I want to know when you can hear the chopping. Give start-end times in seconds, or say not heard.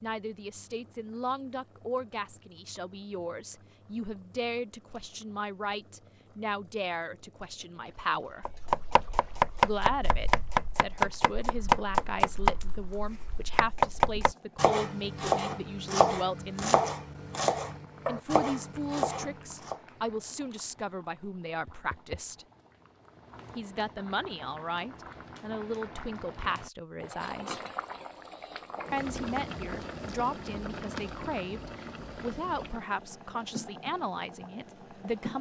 8.4-19.8.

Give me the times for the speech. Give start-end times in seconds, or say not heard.
0.0-8.4, 9.6-16.8, 18.1-22.4, 23.6-27.6, 28.9-35.3.